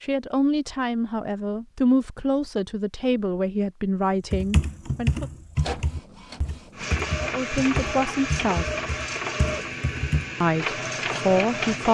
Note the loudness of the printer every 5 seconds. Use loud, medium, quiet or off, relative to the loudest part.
off, loud, loud.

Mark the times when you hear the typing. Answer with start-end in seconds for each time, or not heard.
4.3-10.2.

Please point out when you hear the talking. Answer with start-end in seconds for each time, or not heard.
0.0-5.2, 7.2-8.7, 10.4-11.8.